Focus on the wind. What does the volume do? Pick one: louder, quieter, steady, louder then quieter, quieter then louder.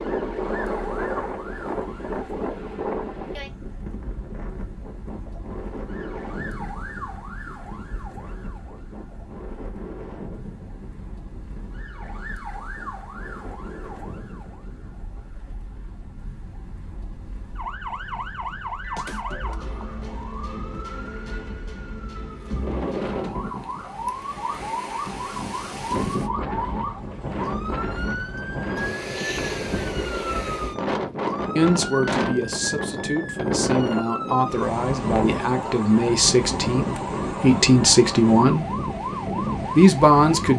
quieter then louder.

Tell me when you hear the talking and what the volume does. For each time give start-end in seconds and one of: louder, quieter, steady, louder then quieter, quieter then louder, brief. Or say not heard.
31.6-38.8 louder
39.8-40.5 brief.